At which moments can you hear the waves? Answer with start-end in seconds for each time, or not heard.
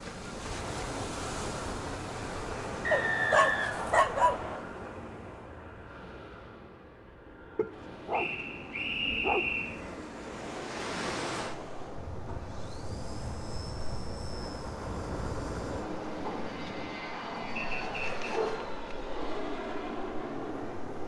0.0-21.0.